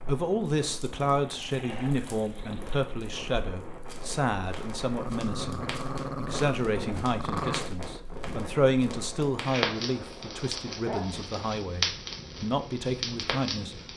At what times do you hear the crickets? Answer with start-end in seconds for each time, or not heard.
not heard.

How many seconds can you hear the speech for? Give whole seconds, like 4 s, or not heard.
14 s.